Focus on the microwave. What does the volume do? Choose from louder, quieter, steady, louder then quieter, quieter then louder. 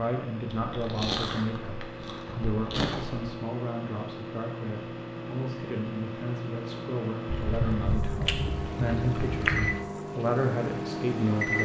louder.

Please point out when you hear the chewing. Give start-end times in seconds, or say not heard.
0.5-3.3, 7.2-9.8.